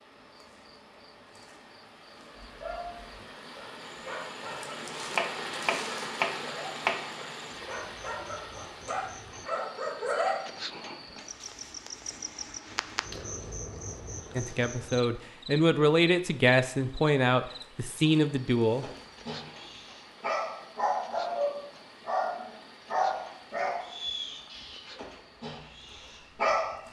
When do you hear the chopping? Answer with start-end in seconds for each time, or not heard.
5.2-7.1.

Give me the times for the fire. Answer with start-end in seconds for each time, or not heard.
not heard.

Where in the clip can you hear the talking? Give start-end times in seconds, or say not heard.
14.3-18.9.